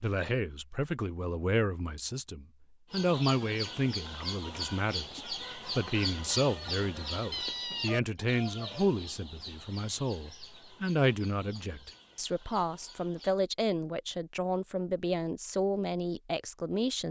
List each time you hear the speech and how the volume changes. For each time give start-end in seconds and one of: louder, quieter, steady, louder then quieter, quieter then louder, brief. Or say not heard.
0.0-17.0 steady.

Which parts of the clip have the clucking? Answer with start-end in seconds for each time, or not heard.
2.9-13.4.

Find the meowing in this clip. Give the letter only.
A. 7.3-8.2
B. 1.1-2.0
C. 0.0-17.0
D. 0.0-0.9
A.